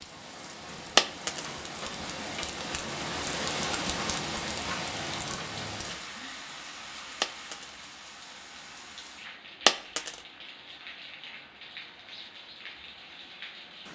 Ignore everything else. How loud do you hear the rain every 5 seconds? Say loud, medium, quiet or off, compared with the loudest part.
loud, medium, medium.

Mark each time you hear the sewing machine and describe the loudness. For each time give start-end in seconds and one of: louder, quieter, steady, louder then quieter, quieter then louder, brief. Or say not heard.
not heard.